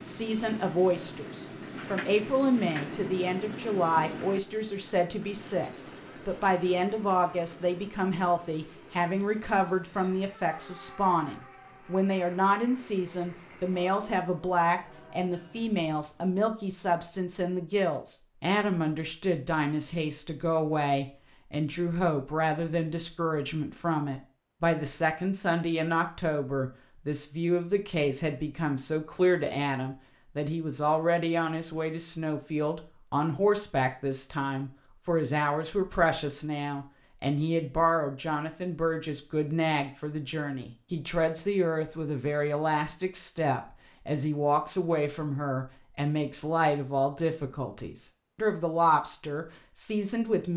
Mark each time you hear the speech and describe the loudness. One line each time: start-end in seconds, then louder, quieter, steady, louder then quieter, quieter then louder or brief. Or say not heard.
0.0-50.5 steady.